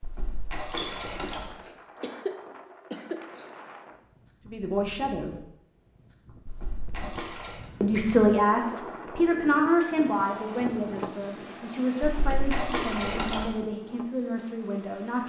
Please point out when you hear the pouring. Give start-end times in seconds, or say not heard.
0.0-1.5, 6.5-7.6, 12.0-13.5.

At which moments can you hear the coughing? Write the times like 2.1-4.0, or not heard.
0.8-3.5.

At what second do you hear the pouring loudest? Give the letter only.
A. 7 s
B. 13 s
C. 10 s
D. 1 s
B.